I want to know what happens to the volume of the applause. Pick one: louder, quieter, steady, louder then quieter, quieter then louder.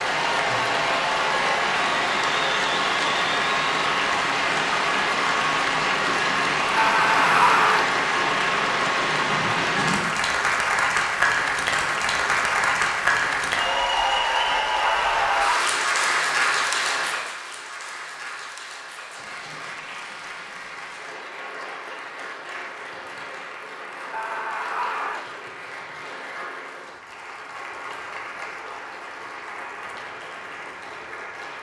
quieter.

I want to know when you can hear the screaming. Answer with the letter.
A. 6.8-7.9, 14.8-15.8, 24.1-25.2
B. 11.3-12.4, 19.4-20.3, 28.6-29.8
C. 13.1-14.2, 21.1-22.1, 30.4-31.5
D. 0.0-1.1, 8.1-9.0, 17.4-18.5
A.